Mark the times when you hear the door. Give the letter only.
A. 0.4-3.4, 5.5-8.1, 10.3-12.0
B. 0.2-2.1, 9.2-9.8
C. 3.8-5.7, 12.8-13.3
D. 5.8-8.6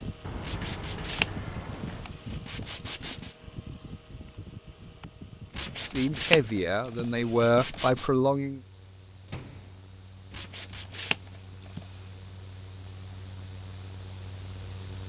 B.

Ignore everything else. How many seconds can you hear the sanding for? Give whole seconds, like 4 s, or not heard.
7 s.